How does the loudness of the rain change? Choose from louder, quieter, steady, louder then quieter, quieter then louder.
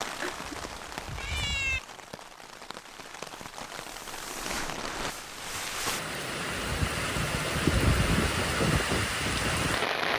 louder.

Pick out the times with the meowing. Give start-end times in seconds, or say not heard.
0.2-1.8.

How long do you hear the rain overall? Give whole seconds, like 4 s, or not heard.
10 s.